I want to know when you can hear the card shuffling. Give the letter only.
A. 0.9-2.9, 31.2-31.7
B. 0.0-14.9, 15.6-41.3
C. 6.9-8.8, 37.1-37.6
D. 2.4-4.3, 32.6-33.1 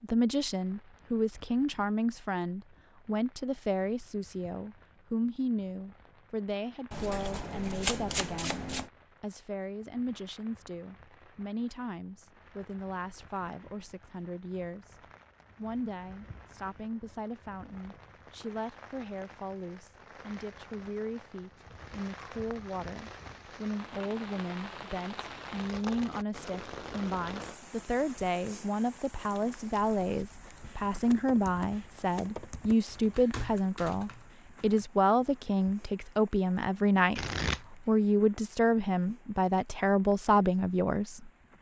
C.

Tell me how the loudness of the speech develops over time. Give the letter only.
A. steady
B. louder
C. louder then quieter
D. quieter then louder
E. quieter
D.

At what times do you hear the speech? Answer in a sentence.
The speech can be heard from 0.0 to 14.9 s and from 15.6 to 41.3 s.